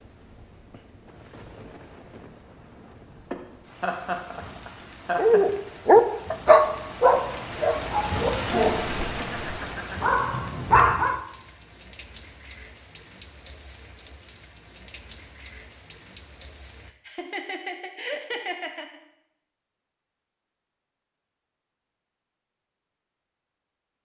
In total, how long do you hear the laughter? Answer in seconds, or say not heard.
5 s.